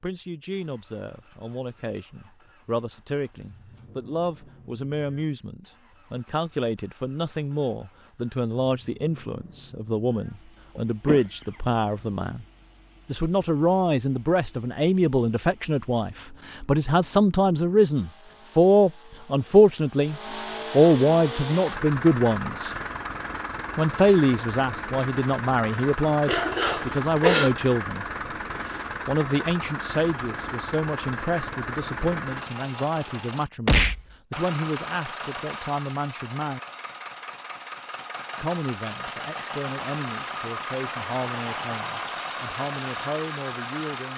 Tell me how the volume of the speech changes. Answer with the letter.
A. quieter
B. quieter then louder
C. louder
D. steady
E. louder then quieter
E.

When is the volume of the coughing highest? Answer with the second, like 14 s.
27 s.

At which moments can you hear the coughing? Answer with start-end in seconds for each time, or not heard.
10.8-12.1, 26.2-27.6.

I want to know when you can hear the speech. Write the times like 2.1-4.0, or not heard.
0.0-12.4, 13.1-22.8, 23.8-28.1, 28.6-36.6, 38.4-44.1.